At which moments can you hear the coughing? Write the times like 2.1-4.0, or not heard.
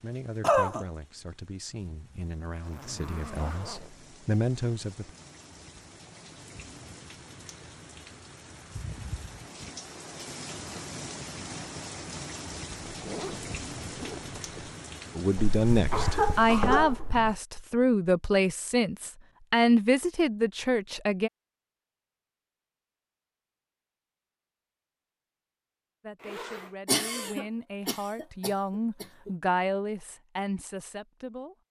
0.4-0.8, 15.3-17.4, 26.9-29.3.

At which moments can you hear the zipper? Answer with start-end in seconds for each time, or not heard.
2.6-3.9, 12.9-14.8, 26.1-26.8.